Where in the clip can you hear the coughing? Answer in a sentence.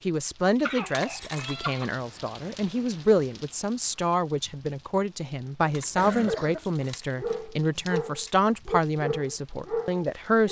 The coughing can be heard from 0.6 to 1.9 s and from 5.7 to 6.7 s.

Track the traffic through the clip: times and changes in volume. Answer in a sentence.
You can't hear the traffic here.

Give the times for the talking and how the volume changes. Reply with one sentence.
You can hear the talking from 0.1 to 10.4 s, at a steady volume.